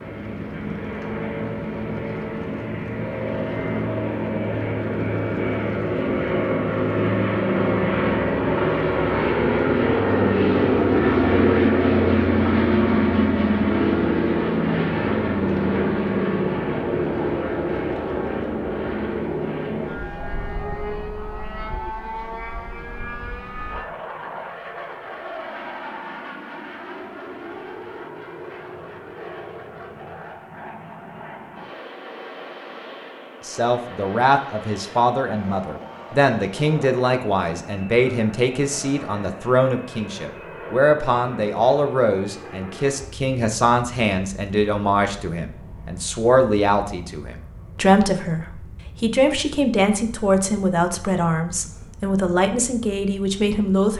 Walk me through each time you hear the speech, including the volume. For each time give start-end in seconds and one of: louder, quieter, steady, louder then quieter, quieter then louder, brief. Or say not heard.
33.5-53.9 steady.